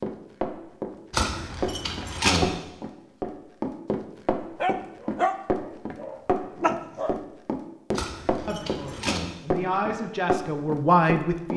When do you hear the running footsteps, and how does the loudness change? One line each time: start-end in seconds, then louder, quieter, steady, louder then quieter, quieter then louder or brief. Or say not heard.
0.0-11.5 steady.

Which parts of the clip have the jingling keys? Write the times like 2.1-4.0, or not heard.
1.1-2.5, 8.0-9.2.